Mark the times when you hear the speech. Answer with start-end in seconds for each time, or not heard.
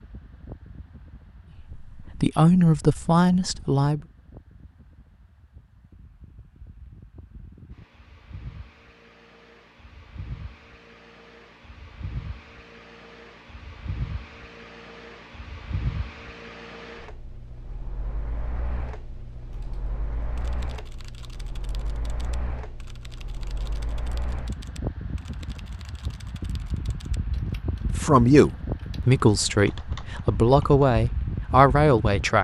1.9-4.0, 27.9-32.4.